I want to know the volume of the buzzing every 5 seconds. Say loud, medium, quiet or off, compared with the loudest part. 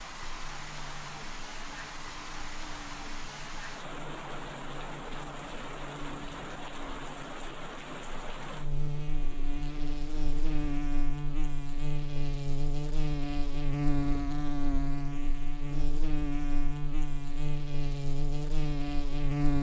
quiet, medium, loud, loud.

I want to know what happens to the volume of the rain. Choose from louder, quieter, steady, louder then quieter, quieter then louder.
quieter.